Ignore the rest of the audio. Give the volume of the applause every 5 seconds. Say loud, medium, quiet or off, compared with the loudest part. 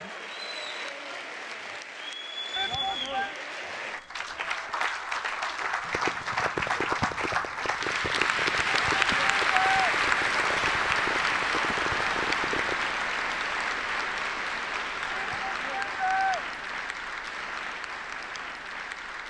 medium, loud, loud, medium.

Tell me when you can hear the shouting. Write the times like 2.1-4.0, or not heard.
2.5-3.4, 8.7-9.9, 15.2-16.4.